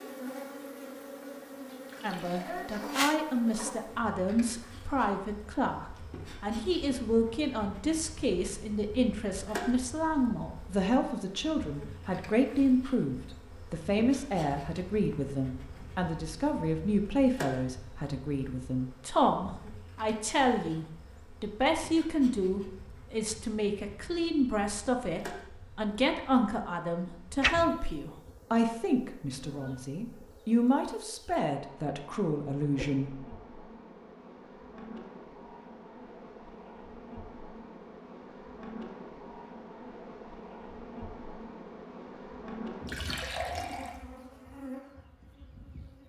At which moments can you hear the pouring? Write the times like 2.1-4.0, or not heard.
1.9-2.6, 42.9-44.0.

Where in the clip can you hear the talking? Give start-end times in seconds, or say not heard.
2.0-33.1.